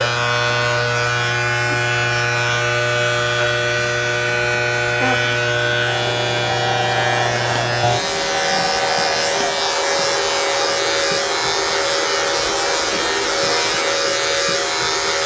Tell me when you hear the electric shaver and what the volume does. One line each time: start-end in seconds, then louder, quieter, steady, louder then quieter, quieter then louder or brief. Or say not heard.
0.0-15.2 steady.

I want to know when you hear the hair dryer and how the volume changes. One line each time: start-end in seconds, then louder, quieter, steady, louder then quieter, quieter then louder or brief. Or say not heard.
0.0-15.2 steady.